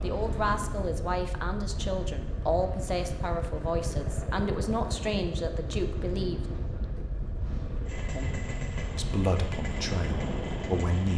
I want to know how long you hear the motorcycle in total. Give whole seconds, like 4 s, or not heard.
11 s.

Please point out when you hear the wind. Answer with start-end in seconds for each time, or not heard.
0.0-10.9.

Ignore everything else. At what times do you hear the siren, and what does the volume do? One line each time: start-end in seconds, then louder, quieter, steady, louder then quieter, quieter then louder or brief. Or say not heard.
not heard.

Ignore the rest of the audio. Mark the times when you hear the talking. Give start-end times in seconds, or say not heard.
0.0-6.4, 8.1-11.1.